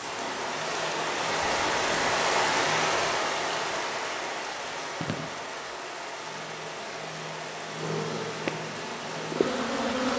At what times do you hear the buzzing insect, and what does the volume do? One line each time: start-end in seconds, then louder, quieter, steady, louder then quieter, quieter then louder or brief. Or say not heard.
0.0-10.1 louder.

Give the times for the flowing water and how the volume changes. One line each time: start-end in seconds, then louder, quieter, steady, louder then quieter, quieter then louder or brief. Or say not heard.
0.0-10.1 quieter.